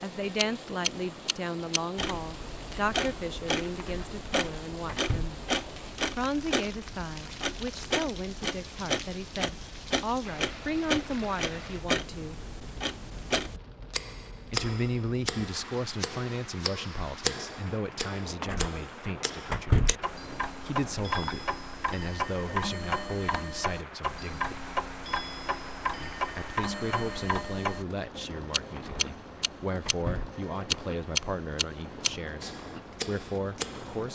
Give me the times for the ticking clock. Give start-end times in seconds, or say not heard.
0.2-34.1.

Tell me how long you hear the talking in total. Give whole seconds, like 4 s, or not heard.
30 s.